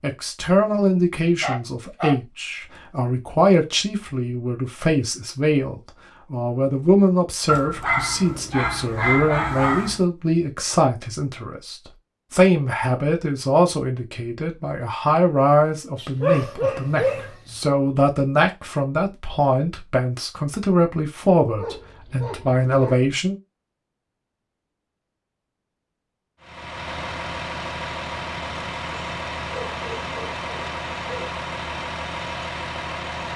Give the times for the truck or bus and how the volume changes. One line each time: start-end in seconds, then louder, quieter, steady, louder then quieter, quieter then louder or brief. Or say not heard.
26.4-33.3 steady.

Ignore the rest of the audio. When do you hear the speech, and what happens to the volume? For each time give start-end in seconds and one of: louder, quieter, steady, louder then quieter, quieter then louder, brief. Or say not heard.
0.0-23.4 steady.